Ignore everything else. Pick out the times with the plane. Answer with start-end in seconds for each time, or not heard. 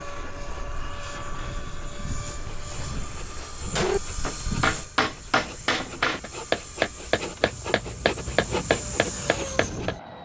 0.0-10.1.